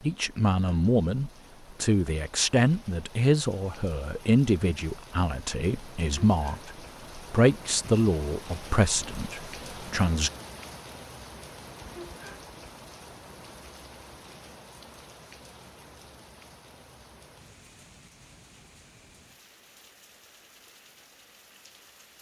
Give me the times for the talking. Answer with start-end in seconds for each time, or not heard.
0.0-10.3.